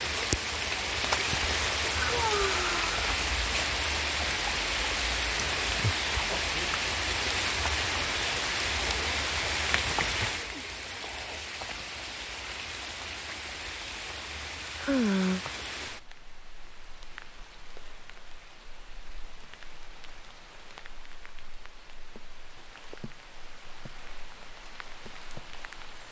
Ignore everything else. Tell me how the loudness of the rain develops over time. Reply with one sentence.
The loudness of the rain goes down.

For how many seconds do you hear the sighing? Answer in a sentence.
You can hear the sighing for 2 seconds altogether.